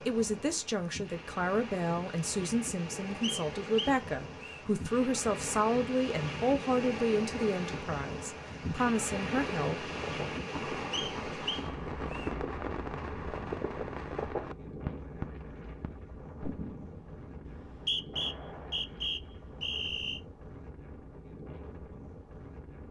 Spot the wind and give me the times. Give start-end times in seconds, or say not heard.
0.0-22.8.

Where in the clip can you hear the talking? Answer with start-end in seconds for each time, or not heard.
0.1-9.9.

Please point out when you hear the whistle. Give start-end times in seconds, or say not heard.
3.2-4.7, 10.9-12.3, 17.4-20.2.